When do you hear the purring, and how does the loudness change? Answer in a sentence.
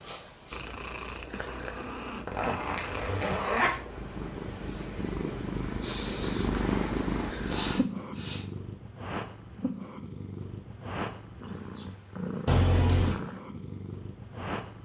You can hear the purring from 0.0 to 14.7 s, getting louder then quieter.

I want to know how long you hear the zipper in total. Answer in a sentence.
You can hear the zipper for 2 seconds altogether.